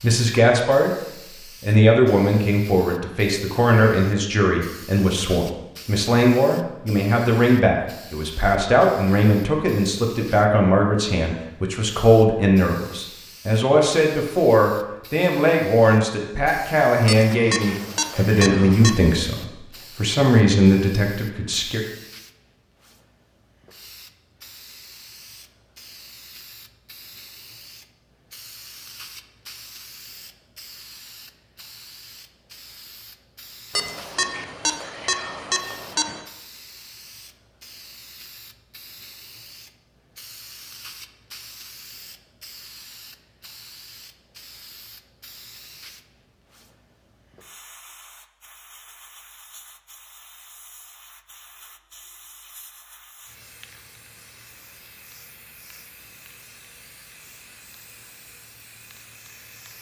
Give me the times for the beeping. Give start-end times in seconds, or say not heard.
17.1-18.9, 33.8-36.2.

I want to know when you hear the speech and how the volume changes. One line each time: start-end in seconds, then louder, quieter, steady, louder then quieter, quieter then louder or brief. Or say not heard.
0.0-0.9 brief
1.6-21.8 steady.